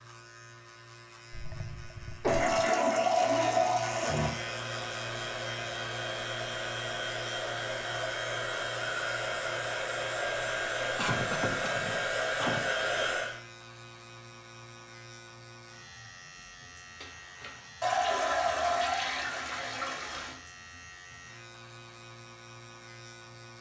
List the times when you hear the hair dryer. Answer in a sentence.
You can hear the hair dryer from 4.2 to 13.3 s.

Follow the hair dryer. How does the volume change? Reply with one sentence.
The loudness of the hair dryer goes up.